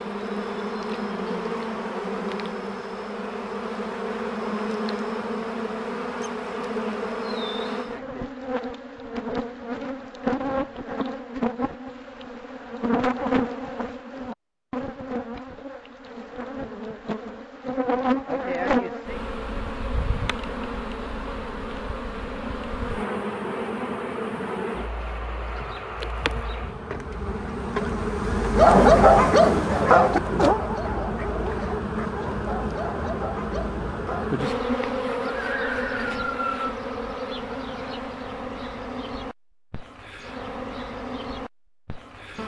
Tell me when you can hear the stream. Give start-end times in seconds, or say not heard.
not heard.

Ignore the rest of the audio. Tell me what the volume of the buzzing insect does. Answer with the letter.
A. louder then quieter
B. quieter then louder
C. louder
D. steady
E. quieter
D.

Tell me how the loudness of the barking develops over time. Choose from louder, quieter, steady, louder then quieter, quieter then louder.
quieter.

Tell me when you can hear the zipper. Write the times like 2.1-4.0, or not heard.
not heard.